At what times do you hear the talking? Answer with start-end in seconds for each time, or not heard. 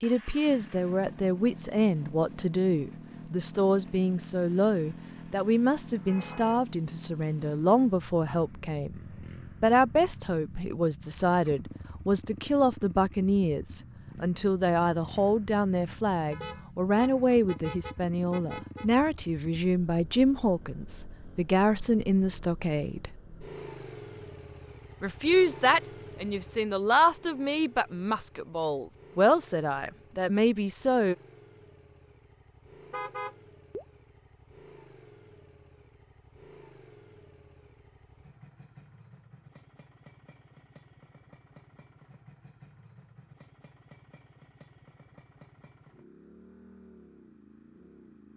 0.0-9.0, 9.6-23.1, 25.0-31.1.